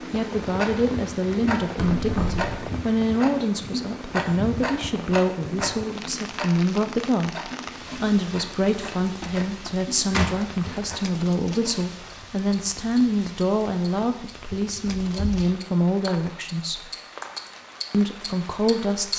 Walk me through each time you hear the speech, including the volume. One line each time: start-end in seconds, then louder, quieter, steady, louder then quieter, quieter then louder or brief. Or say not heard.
0.1-16.9 steady
17.9-19.1 brief.